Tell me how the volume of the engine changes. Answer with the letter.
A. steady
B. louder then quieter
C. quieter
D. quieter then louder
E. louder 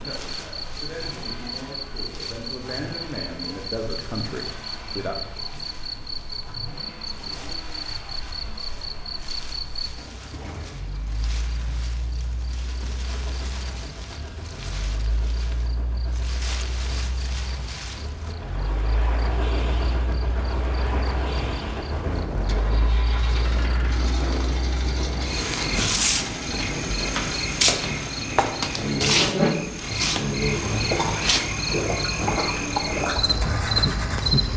E.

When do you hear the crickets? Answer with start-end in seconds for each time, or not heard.
0.1-34.5.